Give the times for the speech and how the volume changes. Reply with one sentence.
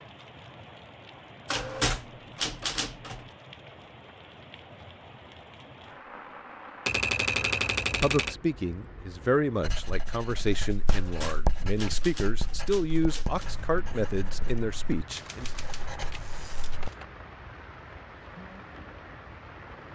You can hear the speech from 7.3 to 15.5 s, at a steady volume.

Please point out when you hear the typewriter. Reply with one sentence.
You can hear the typewriter from 1.4 to 3.2 s, from 6.8 to 8.3 s, from 10.8 to 13.5 s and from 15.1 to 17.1 s.